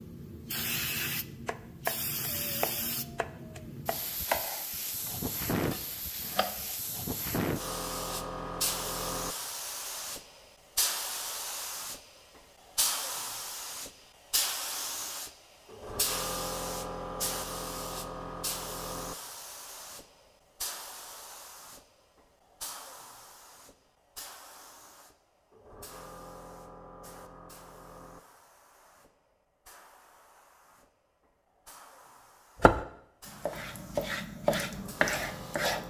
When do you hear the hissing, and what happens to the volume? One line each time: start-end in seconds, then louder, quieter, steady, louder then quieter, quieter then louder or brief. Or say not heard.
0.0-35.8 quieter.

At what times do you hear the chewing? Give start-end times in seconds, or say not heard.
not heard.